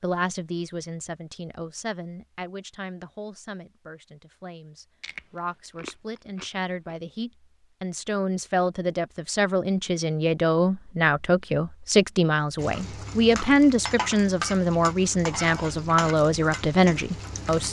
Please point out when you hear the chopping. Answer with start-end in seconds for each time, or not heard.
not heard.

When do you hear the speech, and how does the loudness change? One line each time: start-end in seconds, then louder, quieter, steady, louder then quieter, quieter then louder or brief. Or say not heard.
0.0-17.6 louder.